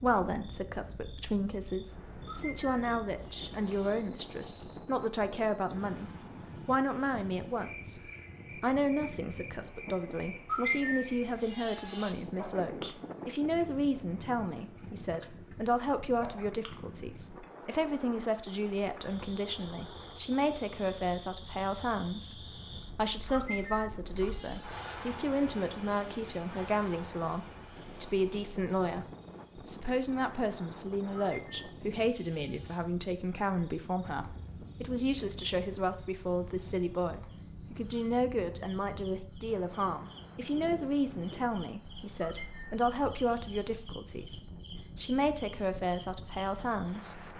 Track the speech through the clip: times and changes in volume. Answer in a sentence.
The speech can be heard from 0.0 to 47.3 s, at a steady volume.